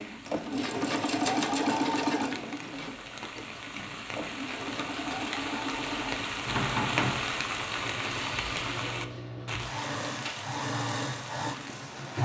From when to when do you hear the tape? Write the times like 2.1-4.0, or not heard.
not heard.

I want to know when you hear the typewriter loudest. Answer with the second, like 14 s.
7 s.